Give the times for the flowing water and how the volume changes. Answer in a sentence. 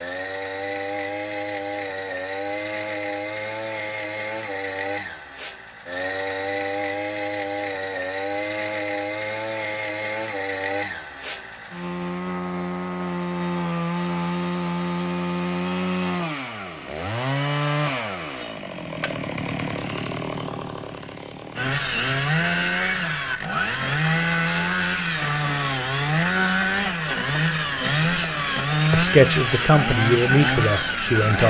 You can't hear the flowing water here.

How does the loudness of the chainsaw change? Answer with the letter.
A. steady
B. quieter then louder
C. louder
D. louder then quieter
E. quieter
C.